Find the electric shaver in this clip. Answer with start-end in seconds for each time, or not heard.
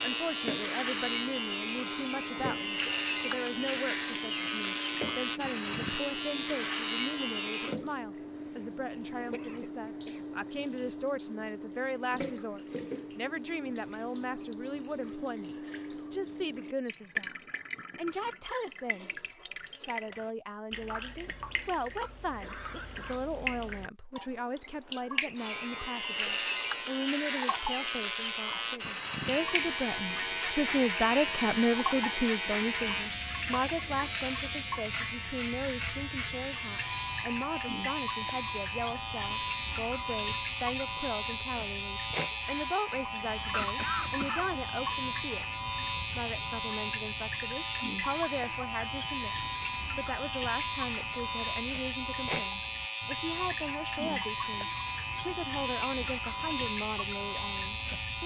0.0-7.8, 25.4-58.2.